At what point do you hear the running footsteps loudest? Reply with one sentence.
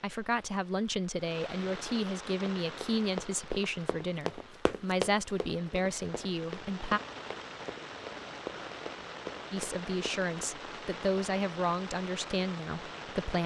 The loudest moment of the running footsteps is at 5 seconds.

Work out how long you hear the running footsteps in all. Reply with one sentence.
The running footsteps can be heard for 8 seconds in total.